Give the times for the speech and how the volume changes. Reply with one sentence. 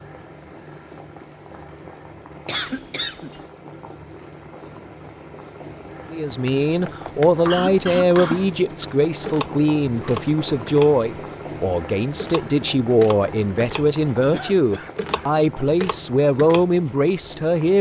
You can hear the speech from 6.1 to 17.7 s, at a steady volume.